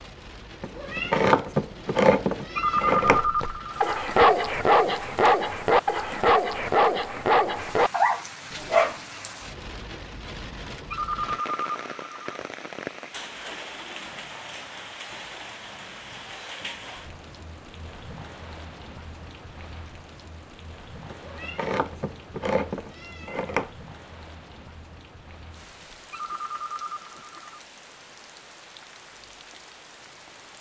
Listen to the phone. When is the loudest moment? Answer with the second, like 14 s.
3 s.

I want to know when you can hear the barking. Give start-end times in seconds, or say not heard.
3.2-8.9.